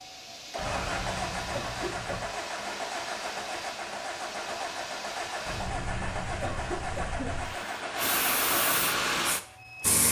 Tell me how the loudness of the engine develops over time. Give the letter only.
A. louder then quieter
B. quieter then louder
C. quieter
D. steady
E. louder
D.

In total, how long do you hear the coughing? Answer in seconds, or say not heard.
4 s.